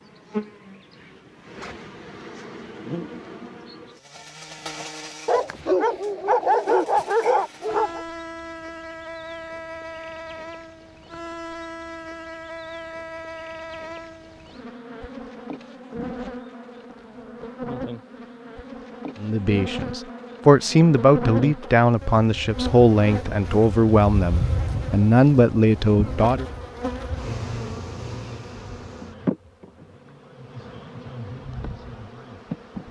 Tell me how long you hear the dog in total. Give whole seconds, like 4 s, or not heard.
3 s.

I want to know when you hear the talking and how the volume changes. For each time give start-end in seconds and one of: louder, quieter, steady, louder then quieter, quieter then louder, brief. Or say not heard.
19.2-26.4 steady.